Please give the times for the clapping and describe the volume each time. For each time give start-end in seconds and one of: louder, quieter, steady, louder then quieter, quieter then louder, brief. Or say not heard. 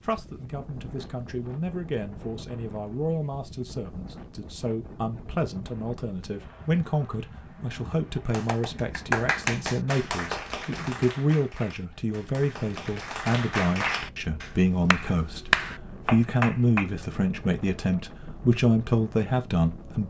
8.3-16.9 quieter then louder.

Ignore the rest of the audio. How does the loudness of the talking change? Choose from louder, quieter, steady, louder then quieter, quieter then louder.
louder.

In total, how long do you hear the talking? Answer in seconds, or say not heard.
20 s.